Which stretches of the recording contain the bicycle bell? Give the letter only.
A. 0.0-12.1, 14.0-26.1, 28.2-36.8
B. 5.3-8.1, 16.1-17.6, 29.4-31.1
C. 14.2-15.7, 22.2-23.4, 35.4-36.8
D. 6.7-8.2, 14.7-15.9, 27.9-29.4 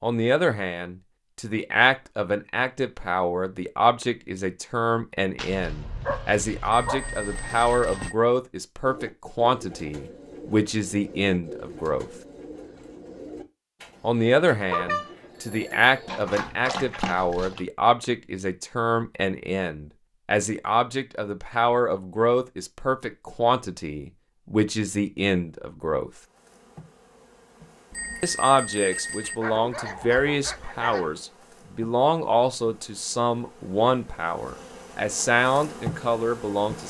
D.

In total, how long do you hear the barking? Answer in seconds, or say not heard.
6 s.